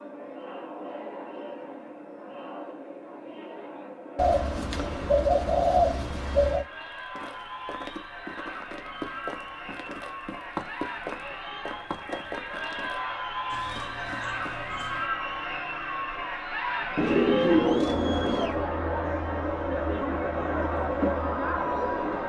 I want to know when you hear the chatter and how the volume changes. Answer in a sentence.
The chatter can be heard from 0.0 to 22.2 s, getting louder.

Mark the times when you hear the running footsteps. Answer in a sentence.
The running footsteps can be heard from 6.7 to 15.1 s.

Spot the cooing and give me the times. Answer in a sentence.
You can hear the cooing from 4.2 to 6.7 s and from 16.9 to 18.6 s.